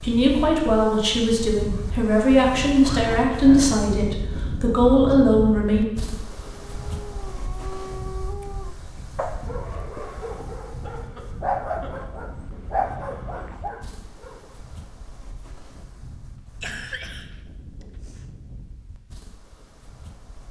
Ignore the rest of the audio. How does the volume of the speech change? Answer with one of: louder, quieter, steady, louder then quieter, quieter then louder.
steady.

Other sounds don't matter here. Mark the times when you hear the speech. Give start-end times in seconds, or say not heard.
0.0-5.8.